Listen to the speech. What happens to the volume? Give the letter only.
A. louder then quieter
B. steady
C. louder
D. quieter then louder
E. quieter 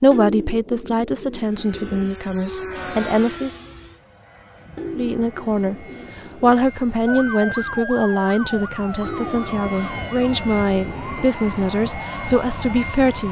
B.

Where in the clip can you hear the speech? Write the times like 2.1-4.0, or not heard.
0.0-3.5, 5.0-13.2.